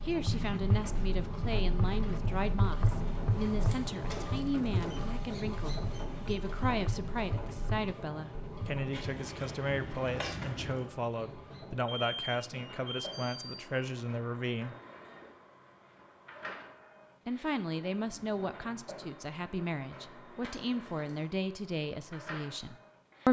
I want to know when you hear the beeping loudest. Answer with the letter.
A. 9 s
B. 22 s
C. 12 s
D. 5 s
C.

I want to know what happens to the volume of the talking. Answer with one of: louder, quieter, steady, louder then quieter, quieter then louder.
steady.